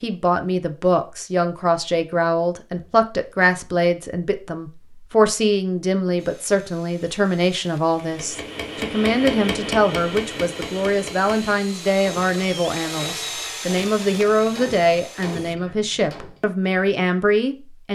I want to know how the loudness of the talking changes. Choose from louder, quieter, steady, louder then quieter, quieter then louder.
steady.